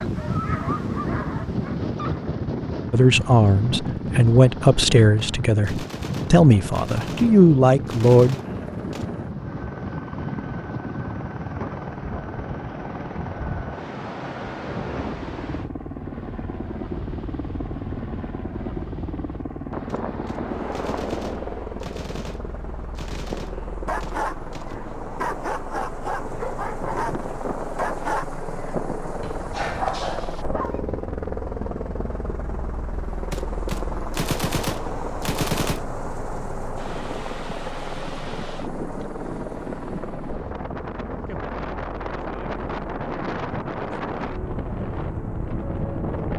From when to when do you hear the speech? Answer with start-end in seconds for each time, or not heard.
2.9-8.4.